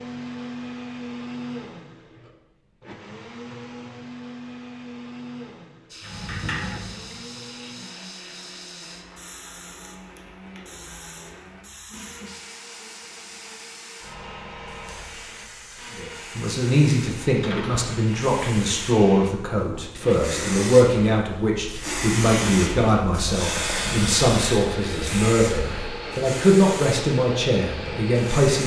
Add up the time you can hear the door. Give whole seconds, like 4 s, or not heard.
2 s.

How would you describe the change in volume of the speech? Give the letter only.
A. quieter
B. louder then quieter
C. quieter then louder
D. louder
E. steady
E.